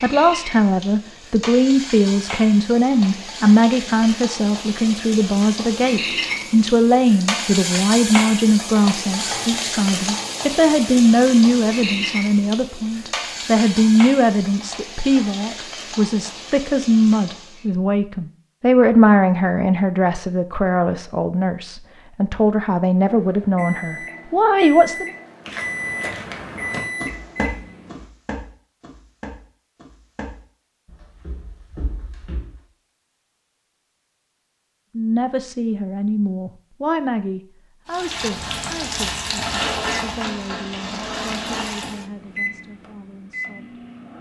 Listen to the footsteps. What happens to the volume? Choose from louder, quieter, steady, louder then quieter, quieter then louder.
quieter.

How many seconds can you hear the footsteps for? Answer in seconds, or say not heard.
7 s.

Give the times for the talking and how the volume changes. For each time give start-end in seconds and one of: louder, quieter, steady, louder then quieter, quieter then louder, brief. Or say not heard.
0.0-25.1 steady
35.0-43.8 quieter.